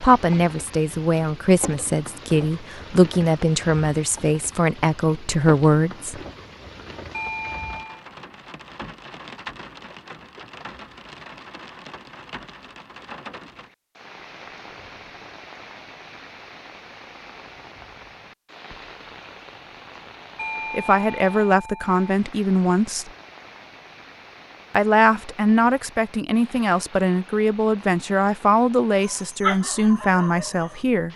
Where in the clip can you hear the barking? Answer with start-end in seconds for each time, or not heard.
29.0-30.9.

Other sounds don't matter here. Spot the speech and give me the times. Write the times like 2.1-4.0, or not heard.
0.0-6.2, 20.7-23.1, 24.7-31.1.